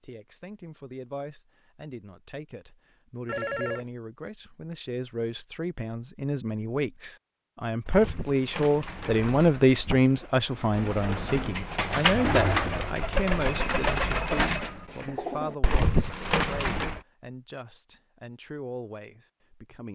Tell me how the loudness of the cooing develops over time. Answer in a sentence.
The volume of the cooing goes up.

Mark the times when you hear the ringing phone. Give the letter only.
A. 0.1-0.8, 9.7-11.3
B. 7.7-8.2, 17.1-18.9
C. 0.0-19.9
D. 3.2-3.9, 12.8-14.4
D.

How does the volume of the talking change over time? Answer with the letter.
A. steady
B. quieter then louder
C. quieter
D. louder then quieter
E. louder
D.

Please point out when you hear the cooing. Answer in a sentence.
The cooing can be heard from 7.8 to 17.0 s.